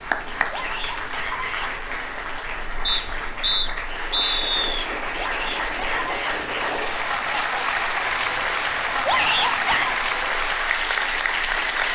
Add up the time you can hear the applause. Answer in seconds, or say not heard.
12 s.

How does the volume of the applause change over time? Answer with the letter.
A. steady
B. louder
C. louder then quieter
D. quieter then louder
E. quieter
B.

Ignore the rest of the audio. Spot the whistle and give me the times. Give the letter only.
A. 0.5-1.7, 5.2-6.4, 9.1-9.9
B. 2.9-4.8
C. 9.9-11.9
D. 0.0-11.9
B.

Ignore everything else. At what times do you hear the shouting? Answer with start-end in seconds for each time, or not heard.
0.5-1.7, 5.2-6.4, 9.1-9.9.